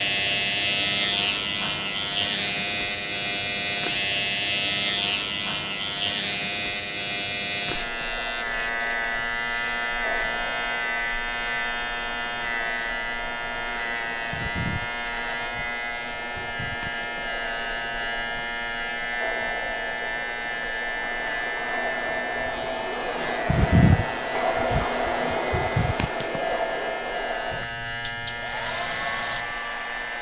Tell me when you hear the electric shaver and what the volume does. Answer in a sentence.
You can hear the electric shaver from 0.0 to 30.1 s, getting quieter.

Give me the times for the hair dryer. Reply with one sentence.
The hair dryer can be heard from 7.7 to 30.1 s.